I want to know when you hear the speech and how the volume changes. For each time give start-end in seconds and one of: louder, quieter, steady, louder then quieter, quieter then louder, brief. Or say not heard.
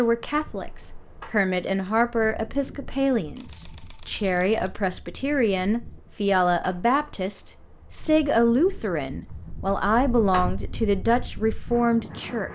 0.0-12.5 steady.